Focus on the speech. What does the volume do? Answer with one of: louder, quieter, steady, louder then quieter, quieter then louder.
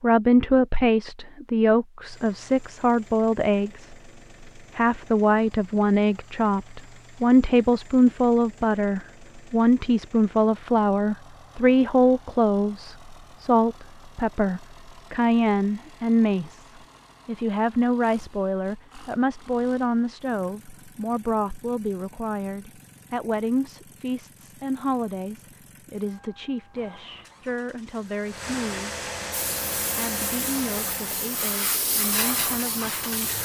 quieter.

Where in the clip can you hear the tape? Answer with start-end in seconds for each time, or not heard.
not heard.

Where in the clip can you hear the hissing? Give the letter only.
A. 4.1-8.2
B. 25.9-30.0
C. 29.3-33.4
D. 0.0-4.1
C.